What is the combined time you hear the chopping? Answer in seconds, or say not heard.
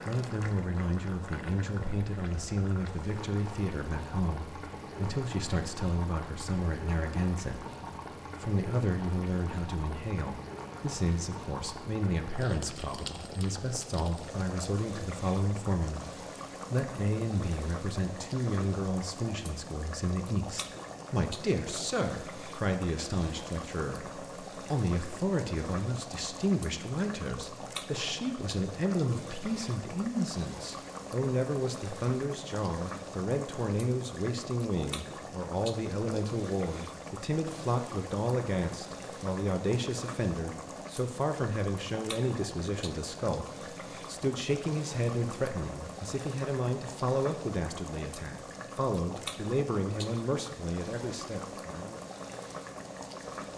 not heard.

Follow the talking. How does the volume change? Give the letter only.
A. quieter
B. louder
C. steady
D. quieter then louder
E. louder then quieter
C.